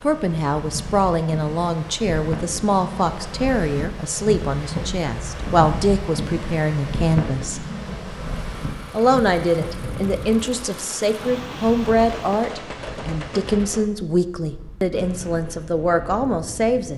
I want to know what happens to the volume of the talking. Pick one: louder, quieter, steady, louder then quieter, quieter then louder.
steady.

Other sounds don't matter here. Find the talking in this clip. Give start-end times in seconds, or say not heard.
0.0-7.7, 8.9-16.9.